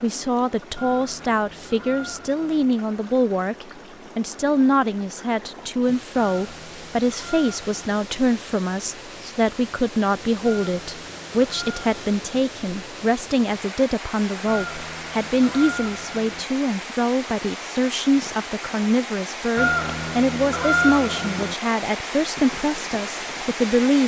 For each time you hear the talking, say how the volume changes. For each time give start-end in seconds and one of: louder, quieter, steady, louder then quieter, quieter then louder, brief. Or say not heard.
0.0-24.0 steady.